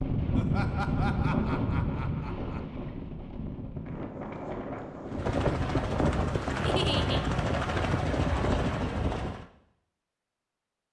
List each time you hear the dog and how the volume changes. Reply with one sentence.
The dog can't be heard in this clip.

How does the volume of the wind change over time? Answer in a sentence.
The volume of the wind goes down.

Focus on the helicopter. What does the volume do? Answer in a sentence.
The loudness of the helicopter stays about the same.